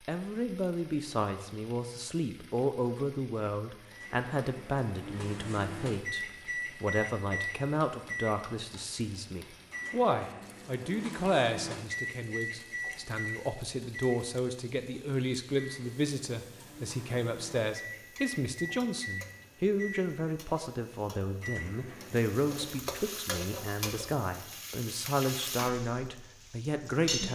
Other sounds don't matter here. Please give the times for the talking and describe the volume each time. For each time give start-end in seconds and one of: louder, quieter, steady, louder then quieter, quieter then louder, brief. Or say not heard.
0.1-27.2 steady.